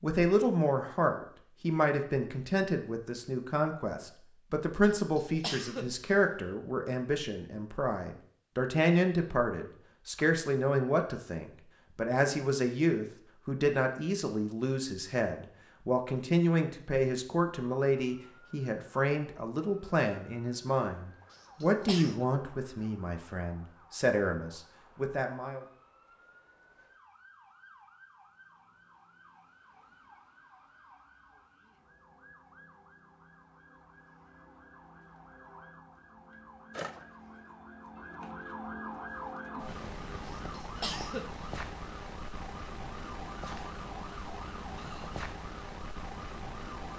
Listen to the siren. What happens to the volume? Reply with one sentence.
The loudness of the siren goes up.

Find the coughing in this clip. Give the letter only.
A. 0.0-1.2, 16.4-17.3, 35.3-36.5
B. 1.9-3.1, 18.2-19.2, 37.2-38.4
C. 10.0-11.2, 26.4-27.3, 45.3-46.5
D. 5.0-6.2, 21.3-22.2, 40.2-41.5
D.